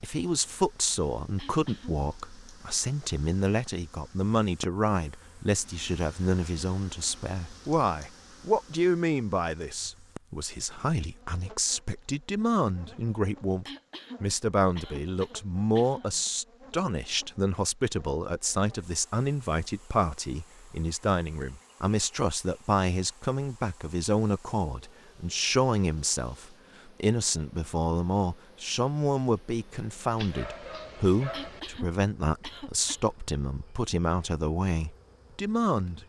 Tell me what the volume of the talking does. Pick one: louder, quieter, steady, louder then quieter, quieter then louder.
steady.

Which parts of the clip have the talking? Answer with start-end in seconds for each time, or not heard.
0.0-36.0.